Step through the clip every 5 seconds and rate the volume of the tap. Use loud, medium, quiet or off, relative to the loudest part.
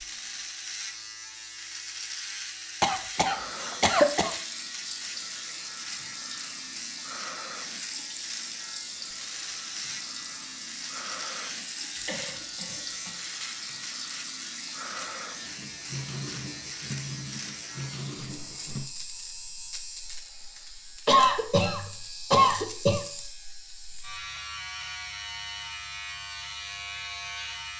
loud, loud, loud, loud, off, off.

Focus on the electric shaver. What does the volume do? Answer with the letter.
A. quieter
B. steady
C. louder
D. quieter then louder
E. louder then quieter
B.